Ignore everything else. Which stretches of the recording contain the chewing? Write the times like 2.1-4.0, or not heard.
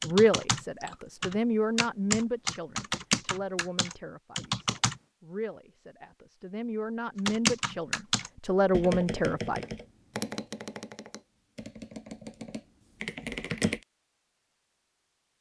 not heard.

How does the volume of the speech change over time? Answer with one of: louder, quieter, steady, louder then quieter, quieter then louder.
quieter then louder.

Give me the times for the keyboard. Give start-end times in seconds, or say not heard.
0.0-5.0, 7.2-13.8.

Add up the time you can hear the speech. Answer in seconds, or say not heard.
10 s.